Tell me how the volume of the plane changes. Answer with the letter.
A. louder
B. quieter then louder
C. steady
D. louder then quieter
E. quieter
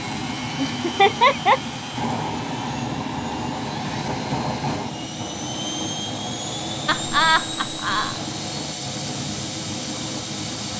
C.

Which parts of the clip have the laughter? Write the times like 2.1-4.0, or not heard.
0.6-1.6, 6.8-8.2.